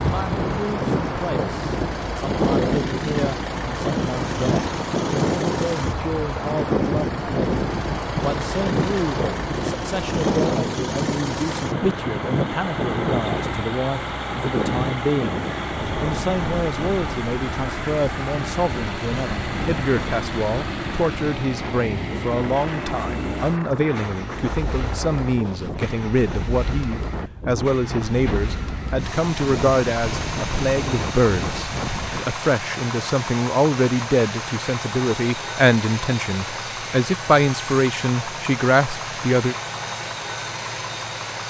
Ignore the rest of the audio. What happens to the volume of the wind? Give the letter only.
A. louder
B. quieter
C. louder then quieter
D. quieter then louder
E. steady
B.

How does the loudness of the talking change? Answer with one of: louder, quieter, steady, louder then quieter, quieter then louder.
louder.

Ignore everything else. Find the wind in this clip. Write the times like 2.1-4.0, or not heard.
0.0-32.3.